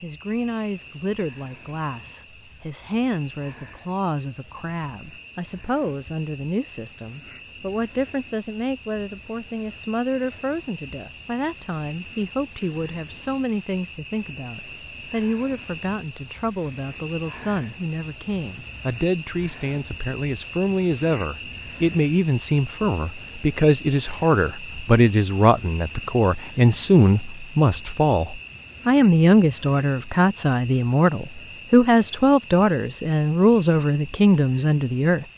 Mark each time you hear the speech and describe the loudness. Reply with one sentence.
You can hear the speech from 0.0 to 35.2 s, getting louder.